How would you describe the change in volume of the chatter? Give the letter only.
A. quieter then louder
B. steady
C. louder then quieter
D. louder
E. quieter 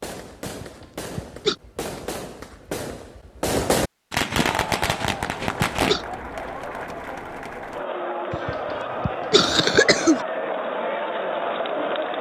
D.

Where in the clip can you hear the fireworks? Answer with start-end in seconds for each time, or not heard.
0.0-6.0.